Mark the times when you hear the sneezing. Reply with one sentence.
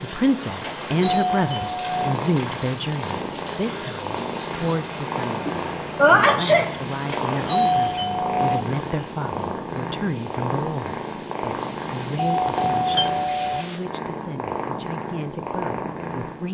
The sneezing can be heard from 5.5 to 6.7 s.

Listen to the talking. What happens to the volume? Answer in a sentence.
The volume of the talking goes down.